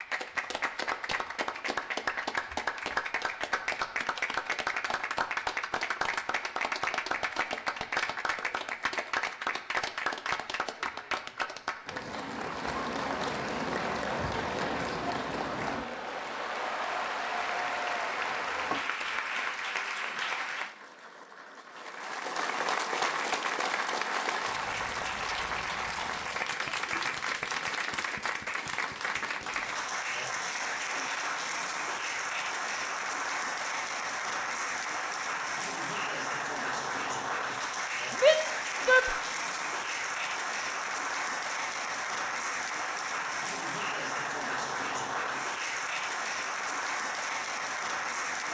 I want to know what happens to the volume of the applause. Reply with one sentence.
The volume of the applause stays about the same.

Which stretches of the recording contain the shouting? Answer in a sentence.
You can hear the shouting from 38.1 to 39.1 s.